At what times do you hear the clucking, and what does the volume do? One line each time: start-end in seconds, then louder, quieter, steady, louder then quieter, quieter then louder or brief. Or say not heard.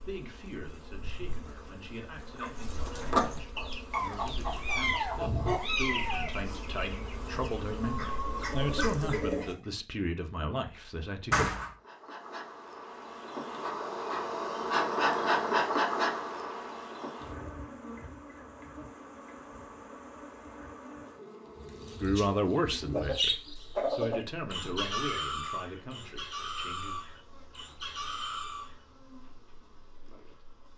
2.4-9.6 quieter then louder
21.5-28.8 louder then quieter.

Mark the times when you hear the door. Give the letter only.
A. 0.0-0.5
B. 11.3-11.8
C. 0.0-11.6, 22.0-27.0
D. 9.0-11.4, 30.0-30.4
B.